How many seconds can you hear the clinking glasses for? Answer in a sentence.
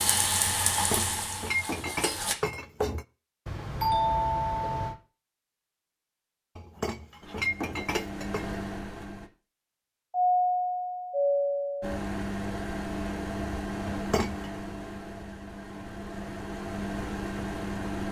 You can hear the clinking glasses for 5 seconds altogether.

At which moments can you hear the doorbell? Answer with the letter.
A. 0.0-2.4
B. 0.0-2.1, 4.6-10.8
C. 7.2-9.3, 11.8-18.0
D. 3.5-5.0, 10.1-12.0
D.